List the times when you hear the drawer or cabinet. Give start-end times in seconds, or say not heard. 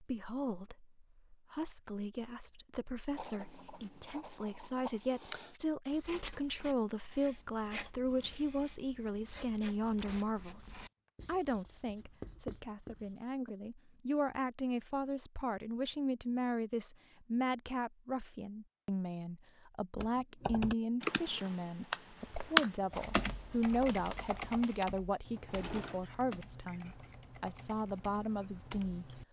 25.4-26.1.